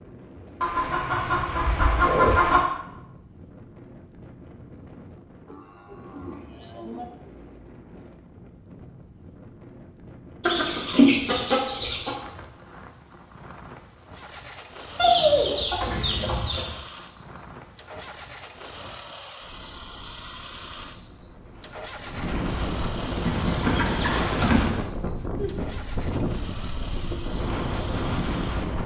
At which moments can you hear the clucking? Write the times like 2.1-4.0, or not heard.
0.6-2.6, 10.4-12.1, 14.9-16.8, 23.2-24.8.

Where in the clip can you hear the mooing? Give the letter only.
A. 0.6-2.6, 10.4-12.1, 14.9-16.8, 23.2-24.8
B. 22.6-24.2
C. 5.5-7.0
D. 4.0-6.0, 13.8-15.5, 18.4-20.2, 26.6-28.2
C.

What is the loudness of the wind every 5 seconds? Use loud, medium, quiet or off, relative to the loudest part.
quiet, quiet, quiet, quiet, loud, loud.